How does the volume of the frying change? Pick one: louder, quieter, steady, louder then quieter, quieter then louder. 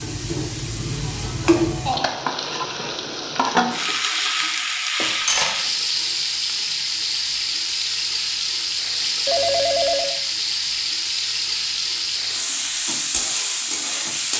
steady.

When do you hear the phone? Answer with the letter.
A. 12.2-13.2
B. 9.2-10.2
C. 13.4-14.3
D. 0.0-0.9
B.